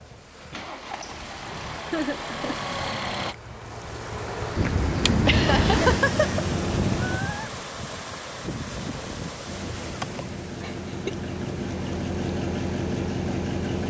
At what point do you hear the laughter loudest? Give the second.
6 s.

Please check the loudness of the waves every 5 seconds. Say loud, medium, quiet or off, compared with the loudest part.
medium, loud, quiet.